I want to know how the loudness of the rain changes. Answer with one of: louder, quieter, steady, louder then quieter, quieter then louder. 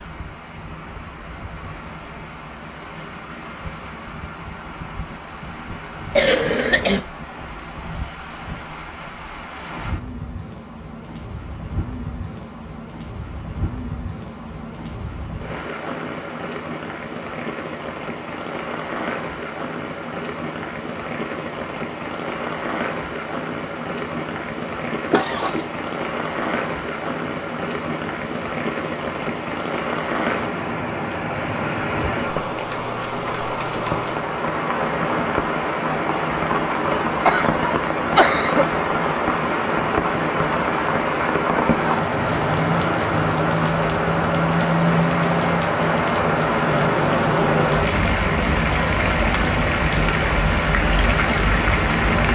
louder.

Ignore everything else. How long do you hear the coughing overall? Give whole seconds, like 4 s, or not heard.
3 s.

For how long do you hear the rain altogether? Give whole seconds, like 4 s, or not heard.
52 s.